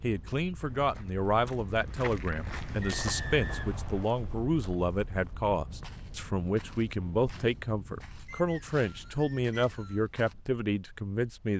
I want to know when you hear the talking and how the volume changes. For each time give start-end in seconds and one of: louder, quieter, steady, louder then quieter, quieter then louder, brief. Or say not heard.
0.0-11.5 steady.